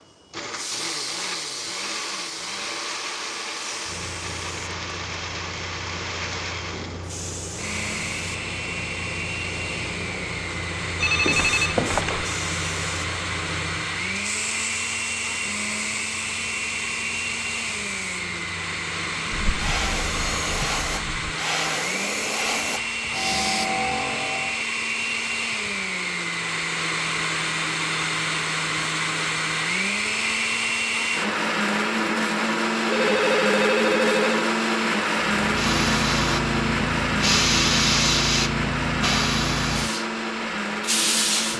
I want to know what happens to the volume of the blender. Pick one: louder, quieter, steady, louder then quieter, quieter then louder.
louder.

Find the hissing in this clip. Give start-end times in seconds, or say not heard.
0.3-24.6, 35.2-41.5.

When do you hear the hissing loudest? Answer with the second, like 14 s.
38 s.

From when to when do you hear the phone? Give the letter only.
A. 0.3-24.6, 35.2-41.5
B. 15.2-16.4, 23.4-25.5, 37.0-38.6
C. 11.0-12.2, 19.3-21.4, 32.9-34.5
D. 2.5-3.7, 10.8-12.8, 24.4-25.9
C.